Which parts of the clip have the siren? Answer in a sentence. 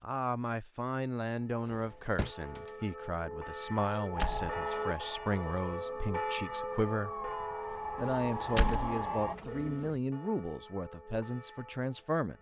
You can hear the siren from 4.2 to 9.3 s.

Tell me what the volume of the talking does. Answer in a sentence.
The volume of the talking stays about the same.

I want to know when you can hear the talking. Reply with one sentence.
The talking can be heard from 0.0 to 7.2 s and from 8.0 to 12.3 s.